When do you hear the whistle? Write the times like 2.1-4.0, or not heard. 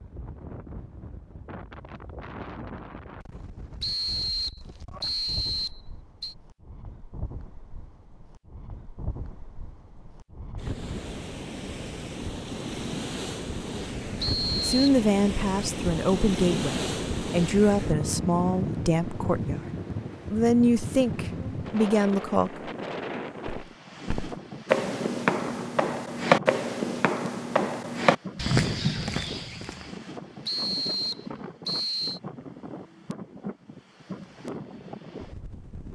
3.8-6.3, 14.2-15.0, 30.4-32.2.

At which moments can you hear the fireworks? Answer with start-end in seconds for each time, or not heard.
not heard.